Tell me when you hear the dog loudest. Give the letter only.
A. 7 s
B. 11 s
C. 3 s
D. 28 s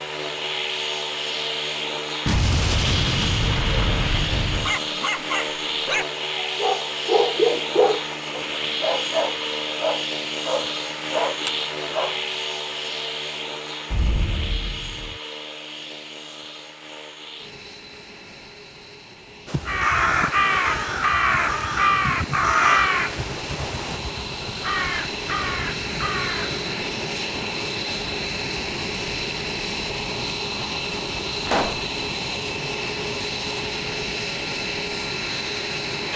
A.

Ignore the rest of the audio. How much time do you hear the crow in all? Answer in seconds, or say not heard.
7 s.